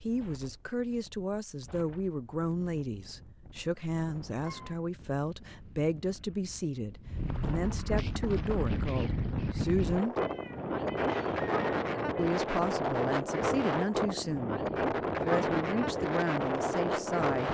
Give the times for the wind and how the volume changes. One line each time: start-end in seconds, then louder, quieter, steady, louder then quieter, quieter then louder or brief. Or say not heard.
0.0-17.5 louder.